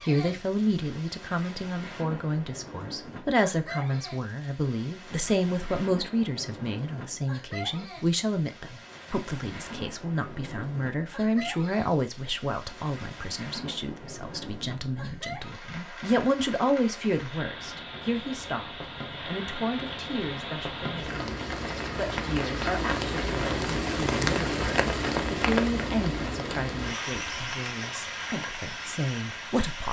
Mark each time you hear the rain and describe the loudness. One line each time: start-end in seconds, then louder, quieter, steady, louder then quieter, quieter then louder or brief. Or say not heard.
0.0-29.8 louder.